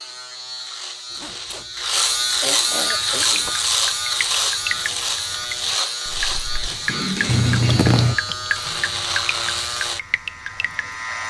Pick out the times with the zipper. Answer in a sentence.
You can hear the zipper from 1.1 to 3.6 s and from 7.2 to 8.2 s.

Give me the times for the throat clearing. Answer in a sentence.
You can hear the throat clearing from 2.4 to 3.5 s and from 6.8 to 8.3 s.